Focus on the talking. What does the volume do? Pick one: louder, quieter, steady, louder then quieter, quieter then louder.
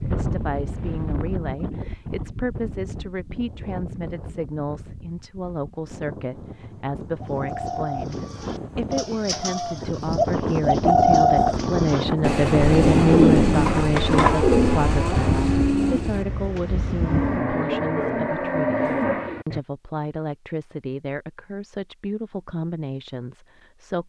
louder then quieter.